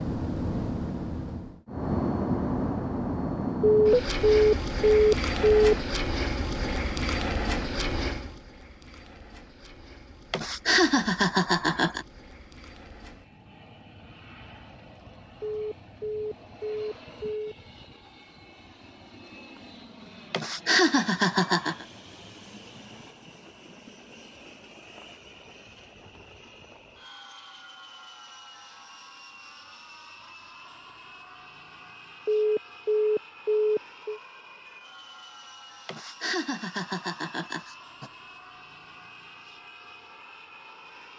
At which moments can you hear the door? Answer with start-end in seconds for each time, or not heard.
not heard.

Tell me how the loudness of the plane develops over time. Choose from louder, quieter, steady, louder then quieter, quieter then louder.
quieter.